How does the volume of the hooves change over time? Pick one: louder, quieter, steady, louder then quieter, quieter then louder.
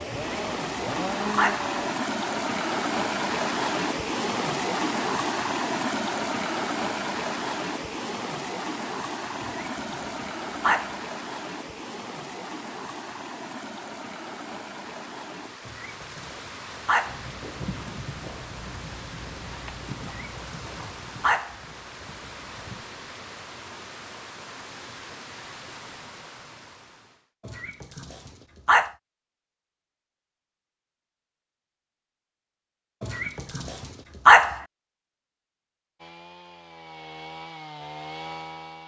quieter.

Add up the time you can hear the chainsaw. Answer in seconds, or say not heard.
5 s.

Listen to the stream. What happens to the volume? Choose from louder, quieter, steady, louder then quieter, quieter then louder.
quieter.